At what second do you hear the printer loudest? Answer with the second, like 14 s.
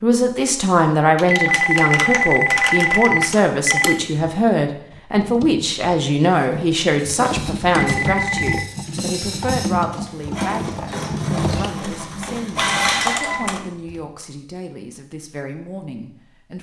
13 s.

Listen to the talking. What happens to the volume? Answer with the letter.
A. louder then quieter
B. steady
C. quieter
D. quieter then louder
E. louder
C.